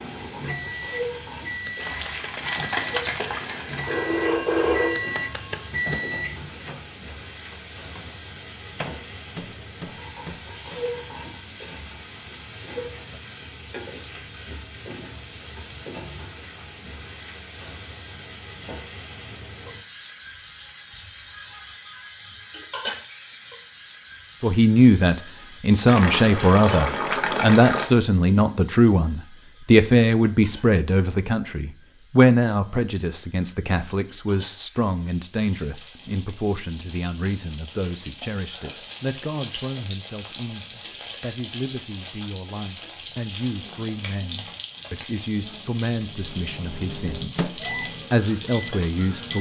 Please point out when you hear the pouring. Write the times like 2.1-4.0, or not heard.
1.8-4.0, 25.9-27.9.